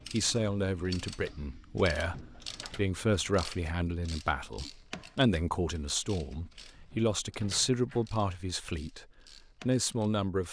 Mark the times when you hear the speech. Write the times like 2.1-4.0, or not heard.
0.1-9.1, 9.7-10.4.